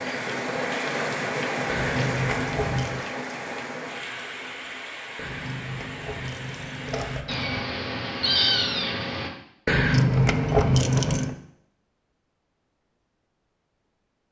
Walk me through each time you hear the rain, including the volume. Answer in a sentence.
You can hear the rain from 0.0 to 7.2 s, getting quieter.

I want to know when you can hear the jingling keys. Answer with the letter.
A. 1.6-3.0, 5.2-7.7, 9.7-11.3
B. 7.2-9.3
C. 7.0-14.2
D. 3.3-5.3
A.